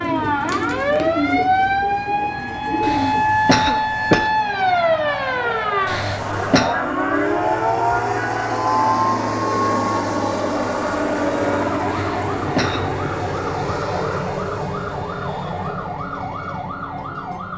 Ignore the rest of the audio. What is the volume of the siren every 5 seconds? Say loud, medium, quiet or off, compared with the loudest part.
loud, loud, medium, medium.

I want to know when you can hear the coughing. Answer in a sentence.
You can hear the coughing from 2.8 to 4.3 s, from 5.8 to 6.8 s and from 11.9 to 13.0 s.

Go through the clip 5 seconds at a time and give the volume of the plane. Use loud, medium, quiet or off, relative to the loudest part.
medium, loud, loud, medium.